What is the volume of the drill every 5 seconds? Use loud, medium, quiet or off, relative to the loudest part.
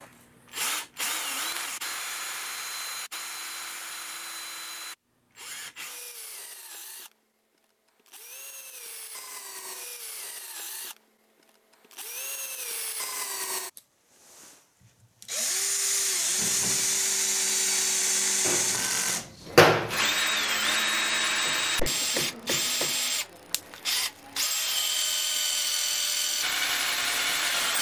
medium, quiet, quiet, loud, loud, loud.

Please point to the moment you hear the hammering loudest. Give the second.
20 s.